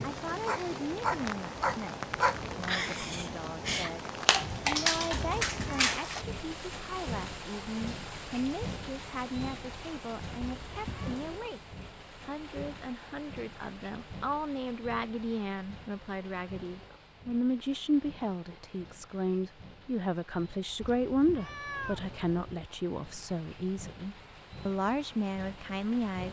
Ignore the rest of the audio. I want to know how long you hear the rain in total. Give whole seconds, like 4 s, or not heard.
26 s.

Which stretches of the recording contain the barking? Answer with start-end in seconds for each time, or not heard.
0.5-6.2.